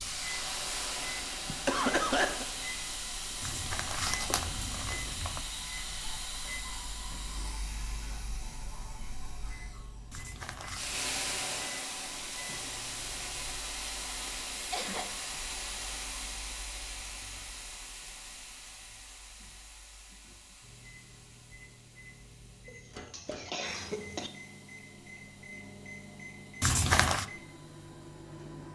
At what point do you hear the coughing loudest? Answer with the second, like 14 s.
2 s.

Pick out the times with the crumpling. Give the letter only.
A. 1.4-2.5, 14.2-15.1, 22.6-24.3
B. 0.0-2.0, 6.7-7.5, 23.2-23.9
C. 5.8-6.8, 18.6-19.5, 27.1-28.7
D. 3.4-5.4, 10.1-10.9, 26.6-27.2
D.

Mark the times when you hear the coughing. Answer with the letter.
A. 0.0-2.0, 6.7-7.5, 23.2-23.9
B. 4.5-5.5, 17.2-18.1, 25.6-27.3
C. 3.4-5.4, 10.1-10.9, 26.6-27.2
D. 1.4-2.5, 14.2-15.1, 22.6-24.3
D.